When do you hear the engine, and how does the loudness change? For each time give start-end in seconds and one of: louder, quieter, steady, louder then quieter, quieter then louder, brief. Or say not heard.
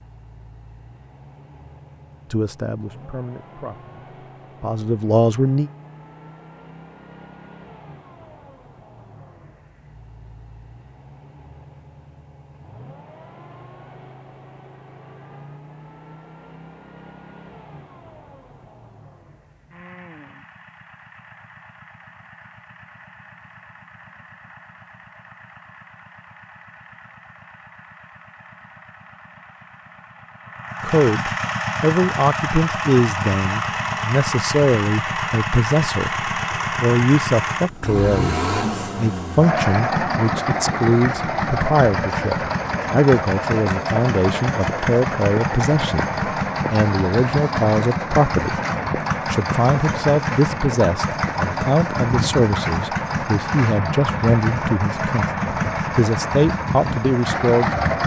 0.0-58.0 louder.